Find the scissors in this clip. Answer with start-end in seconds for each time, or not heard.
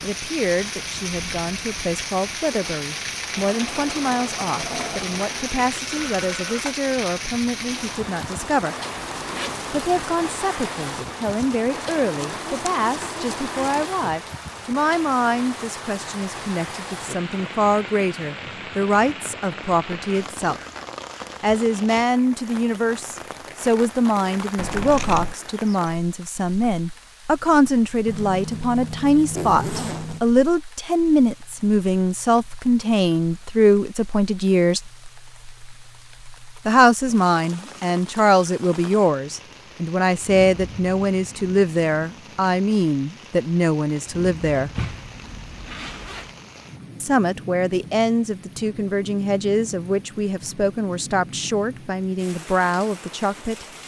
24.6-25.4.